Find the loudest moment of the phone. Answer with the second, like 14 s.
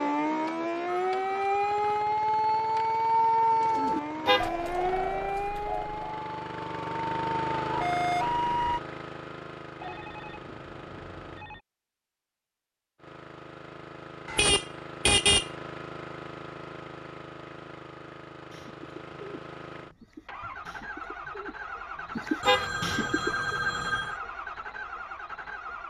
24 s.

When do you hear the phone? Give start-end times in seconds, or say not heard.
0.8-2.1, 9.8-11.6, 22.4-24.2.